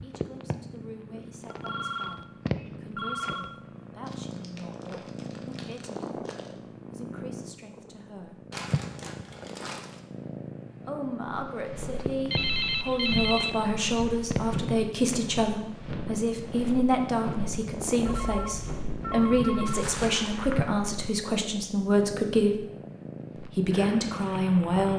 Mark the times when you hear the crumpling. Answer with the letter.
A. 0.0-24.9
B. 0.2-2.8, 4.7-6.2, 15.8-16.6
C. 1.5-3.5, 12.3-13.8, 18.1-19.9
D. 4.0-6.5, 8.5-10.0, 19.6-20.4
D.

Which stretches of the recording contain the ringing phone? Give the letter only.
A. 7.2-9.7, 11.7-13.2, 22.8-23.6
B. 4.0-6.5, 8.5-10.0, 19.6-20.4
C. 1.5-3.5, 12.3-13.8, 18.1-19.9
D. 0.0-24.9
C.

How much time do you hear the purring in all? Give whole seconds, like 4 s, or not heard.
25 s.